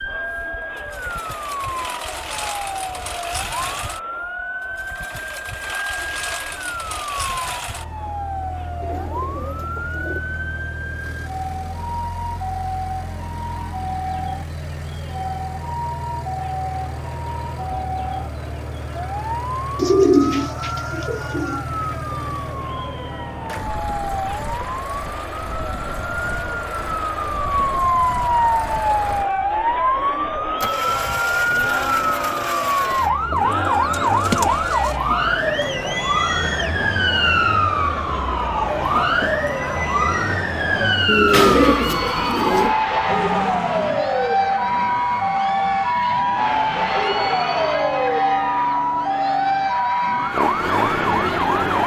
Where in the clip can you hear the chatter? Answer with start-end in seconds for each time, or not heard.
0.0-51.8.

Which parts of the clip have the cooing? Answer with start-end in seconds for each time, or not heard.
8.8-10.2, 19.8-21.6, 33.3-35.0, 41.0-42.8.